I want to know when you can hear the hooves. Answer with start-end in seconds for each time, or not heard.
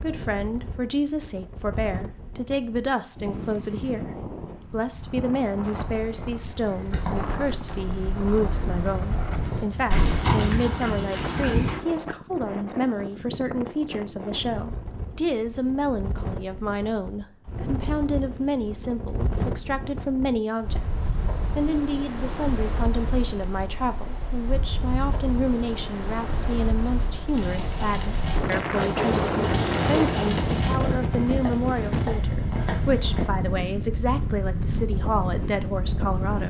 5.8-11.8, 27.3-33.3.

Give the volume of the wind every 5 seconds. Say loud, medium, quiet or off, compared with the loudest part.
medium, medium, medium, medium, medium, loud, loud, loud.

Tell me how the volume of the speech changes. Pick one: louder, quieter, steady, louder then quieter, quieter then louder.
steady.